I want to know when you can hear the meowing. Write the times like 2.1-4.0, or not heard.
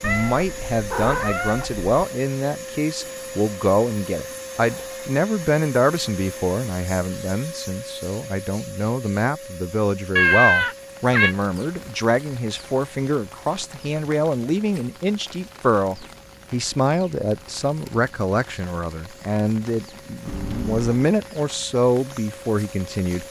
0.0-1.9, 10.2-11.3, 20.2-21.1.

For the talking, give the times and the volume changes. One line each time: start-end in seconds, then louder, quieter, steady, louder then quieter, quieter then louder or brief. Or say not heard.
0.0-23.2 steady.